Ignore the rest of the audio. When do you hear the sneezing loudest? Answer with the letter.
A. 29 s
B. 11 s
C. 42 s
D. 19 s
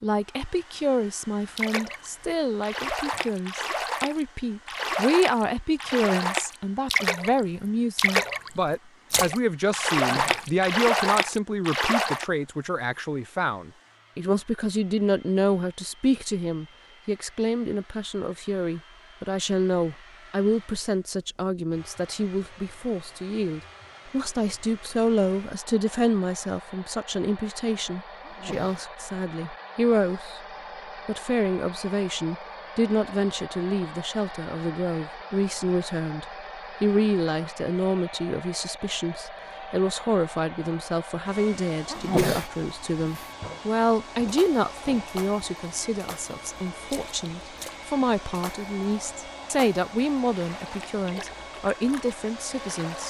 C.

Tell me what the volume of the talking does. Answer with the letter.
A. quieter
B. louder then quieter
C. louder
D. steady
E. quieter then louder
D.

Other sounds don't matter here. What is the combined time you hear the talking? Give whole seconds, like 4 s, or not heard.
52 s.